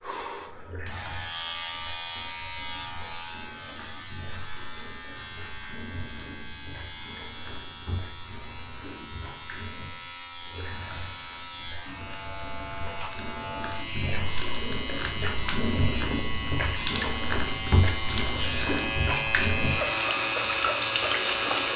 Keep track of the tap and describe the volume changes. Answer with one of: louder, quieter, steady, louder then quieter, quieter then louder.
louder.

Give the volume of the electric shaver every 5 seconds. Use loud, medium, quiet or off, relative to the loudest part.
medium, quiet, medium, loud, loud.